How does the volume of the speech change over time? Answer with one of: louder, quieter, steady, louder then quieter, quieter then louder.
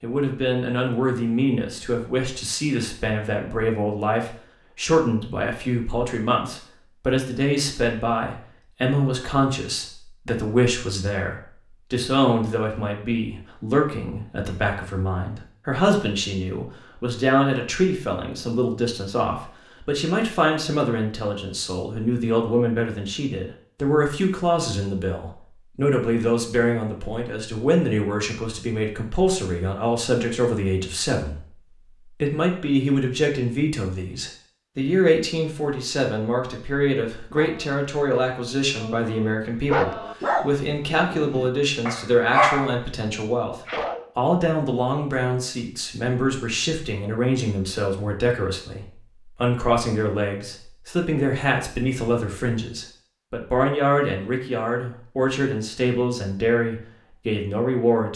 steady.